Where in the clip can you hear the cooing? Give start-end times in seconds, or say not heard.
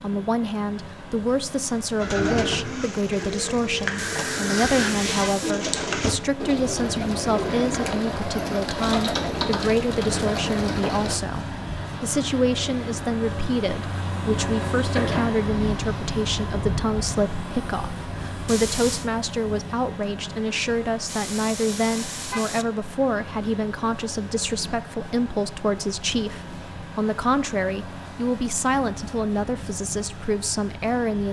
1.9-11.2.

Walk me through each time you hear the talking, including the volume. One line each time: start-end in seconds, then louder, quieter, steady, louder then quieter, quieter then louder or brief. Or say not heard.
0.0-31.2 steady.